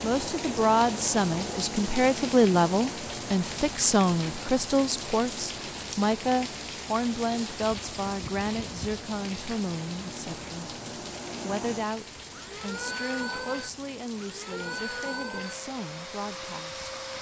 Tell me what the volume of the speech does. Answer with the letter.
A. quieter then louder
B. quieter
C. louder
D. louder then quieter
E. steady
B.